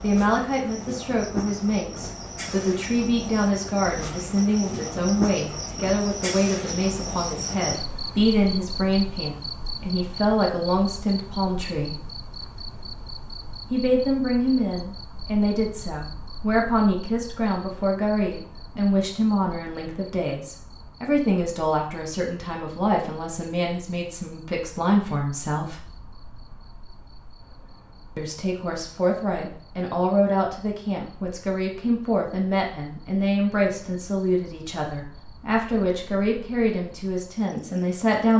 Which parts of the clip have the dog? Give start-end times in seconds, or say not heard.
not heard.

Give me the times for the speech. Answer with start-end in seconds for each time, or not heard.
0.0-12.0, 13.7-25.9, 28.1-38.3.